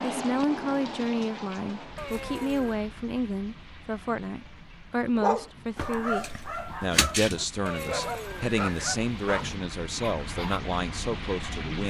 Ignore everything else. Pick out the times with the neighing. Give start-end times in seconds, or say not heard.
1.9-2.8, 7.7-9.0.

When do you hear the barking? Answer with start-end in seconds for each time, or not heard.
5.2-10.6.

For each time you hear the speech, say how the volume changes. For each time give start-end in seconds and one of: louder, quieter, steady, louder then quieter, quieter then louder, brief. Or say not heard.
0.0-11.8 steady.